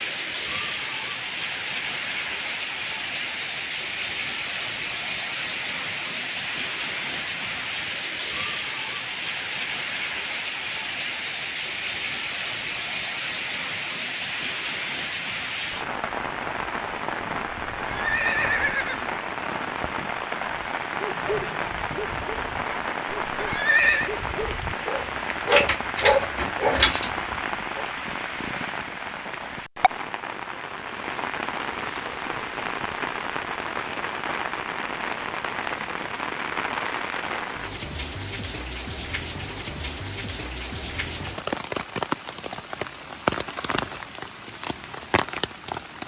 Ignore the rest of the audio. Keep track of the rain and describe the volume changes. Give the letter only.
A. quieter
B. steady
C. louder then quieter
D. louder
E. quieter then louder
B.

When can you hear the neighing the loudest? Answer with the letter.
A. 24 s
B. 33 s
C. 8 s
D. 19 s
A.